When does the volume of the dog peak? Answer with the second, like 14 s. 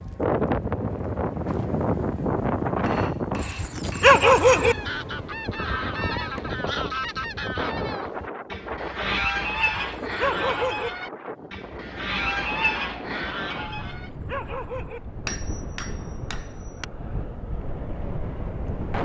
4 s.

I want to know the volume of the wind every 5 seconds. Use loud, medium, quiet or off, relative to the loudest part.
loud, medium, medium, medium.